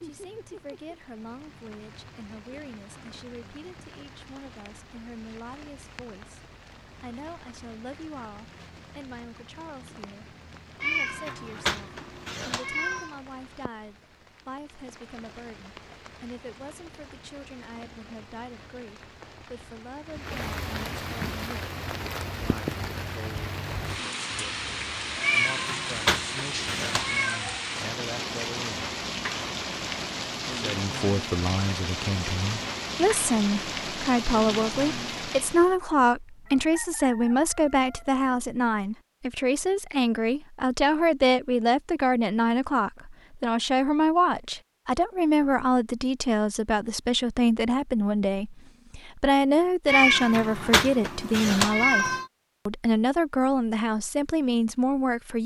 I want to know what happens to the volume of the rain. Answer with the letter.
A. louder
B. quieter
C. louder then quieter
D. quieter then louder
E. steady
A.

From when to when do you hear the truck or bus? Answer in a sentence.
You can't hear the truck or bus here.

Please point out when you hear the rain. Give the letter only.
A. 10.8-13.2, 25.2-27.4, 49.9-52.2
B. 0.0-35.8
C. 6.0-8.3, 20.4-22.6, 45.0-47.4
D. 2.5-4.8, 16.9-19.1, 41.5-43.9
B.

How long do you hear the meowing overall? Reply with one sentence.
You can hear the meowing for 7 seconds altogether.